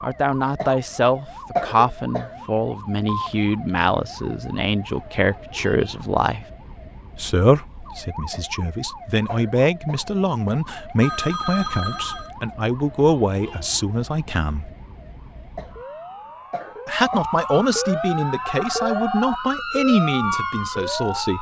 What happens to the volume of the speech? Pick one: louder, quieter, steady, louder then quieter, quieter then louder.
steady.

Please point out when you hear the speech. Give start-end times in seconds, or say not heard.
0.0-6.5, 7.2-14.7, 16.9-21.3.